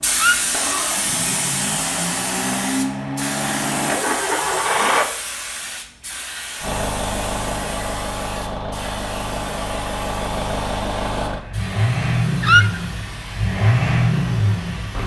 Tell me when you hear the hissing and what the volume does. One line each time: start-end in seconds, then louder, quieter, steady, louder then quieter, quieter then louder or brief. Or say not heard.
0.0-15.0 quieter.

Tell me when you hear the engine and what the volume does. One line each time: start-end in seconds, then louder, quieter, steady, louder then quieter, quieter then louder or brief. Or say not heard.
0.0-5.1 louder
6.6-15.0 louder.